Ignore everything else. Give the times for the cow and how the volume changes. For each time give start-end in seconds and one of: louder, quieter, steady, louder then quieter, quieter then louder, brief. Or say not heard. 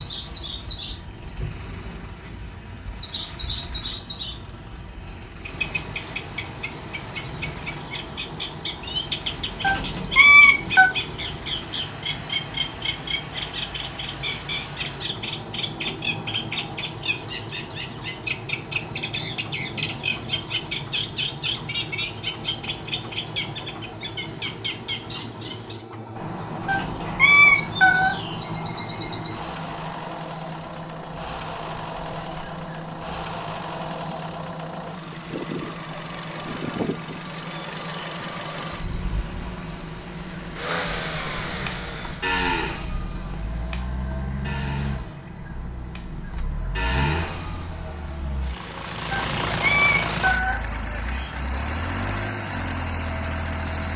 40.8-47.6 quieter then louder.